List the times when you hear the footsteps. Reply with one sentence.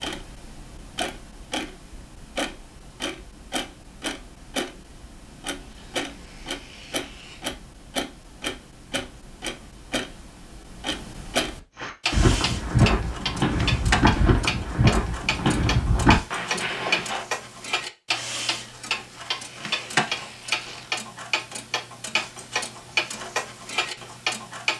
You can hear the footsteps from 11.8 to 17.2 s.